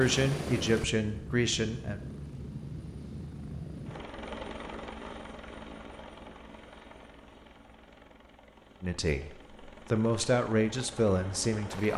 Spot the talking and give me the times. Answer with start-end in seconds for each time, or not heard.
0.0-2.0, 8.8-11.9.